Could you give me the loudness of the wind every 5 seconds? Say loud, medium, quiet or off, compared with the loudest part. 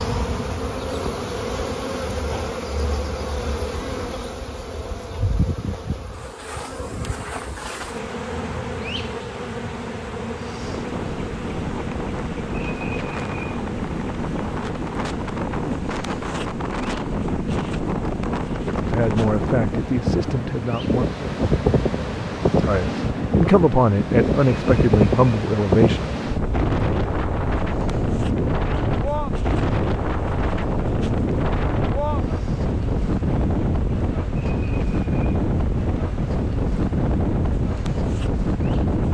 off, off, medium, loud, loud, loud, loud, loud.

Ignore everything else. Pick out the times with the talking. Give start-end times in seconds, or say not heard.
18.9-21.1, 22.6-26.1.